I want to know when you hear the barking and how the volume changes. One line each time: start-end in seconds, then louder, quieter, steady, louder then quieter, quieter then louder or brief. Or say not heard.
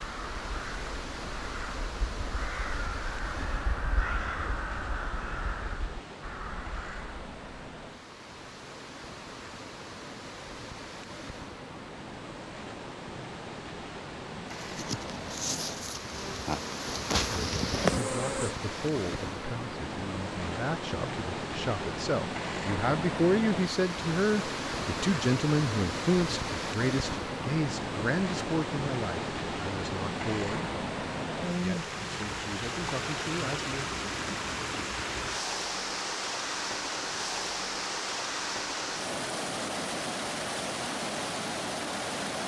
not heard.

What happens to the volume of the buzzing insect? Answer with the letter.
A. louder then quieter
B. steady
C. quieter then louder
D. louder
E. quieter
D.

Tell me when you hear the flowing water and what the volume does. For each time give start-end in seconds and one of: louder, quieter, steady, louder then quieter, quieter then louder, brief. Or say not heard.
0.0-42.4 louder.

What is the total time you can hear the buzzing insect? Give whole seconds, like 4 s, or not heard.
4 s.